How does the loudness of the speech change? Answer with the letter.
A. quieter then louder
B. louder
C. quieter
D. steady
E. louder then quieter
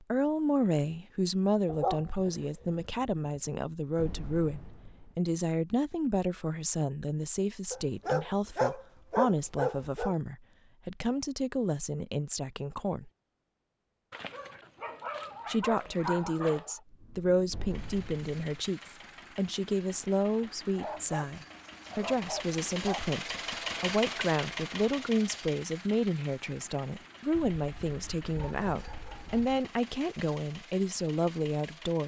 D.